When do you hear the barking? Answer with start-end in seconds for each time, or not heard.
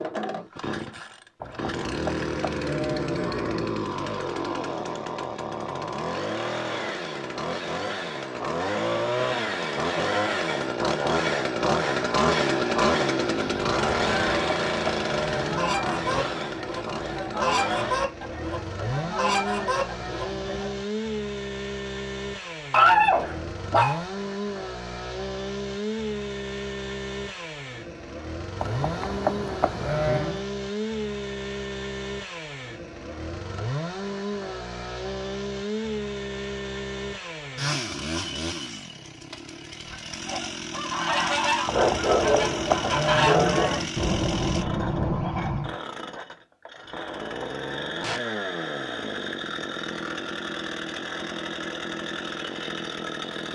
22.7-24.1, 41.7-43.7.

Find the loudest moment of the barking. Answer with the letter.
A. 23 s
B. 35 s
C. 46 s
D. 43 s
A.